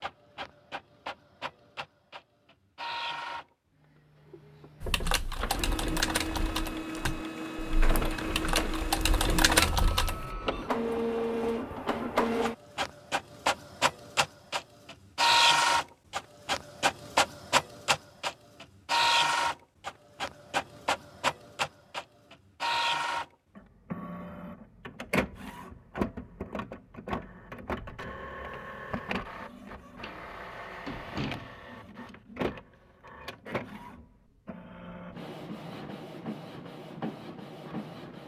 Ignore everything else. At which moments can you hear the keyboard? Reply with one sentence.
The keyboard can be heard from 4.8 to 10.2 s.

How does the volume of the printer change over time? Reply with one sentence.
The volume of the printer goes up, then down.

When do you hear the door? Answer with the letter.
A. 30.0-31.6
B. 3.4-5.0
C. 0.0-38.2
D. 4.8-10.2
A.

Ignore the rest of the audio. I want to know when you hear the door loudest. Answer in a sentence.
The loudest moment of the door is at 31 seconds.